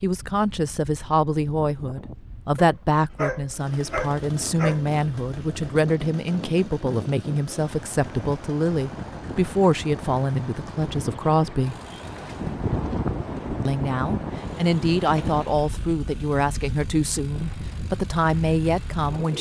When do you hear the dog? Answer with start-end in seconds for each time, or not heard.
2.5-4.9.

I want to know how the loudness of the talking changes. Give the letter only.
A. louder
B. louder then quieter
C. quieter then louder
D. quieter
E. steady
E.